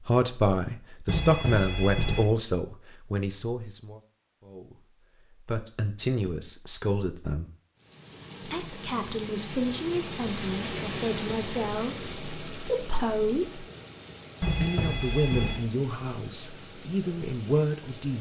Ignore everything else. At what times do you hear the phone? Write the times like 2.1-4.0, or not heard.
1.1-2.2, 14.4-15.6.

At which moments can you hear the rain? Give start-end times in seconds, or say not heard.
7.8-18.1.